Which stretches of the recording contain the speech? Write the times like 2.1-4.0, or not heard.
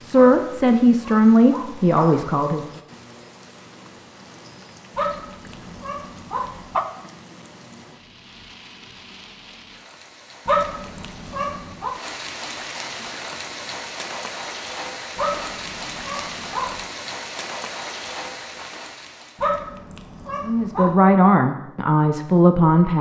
0.0-2.6, 20.4-22.9.